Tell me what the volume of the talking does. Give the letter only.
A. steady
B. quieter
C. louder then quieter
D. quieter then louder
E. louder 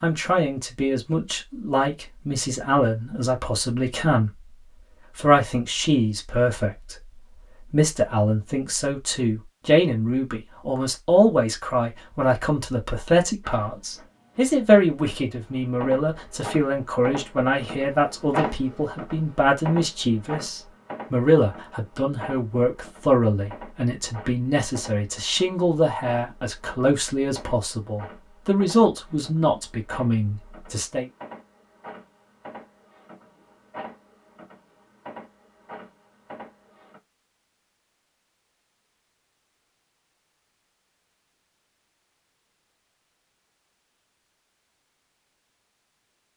A.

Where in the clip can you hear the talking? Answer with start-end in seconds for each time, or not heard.
0.0-4.5, 5.2-31.1.